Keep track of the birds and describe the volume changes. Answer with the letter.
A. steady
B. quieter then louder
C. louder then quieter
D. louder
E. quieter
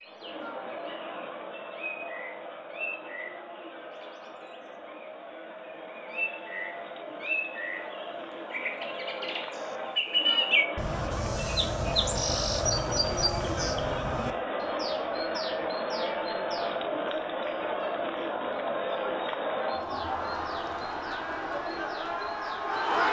C.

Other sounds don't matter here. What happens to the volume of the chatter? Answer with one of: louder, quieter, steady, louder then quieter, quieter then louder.
louder.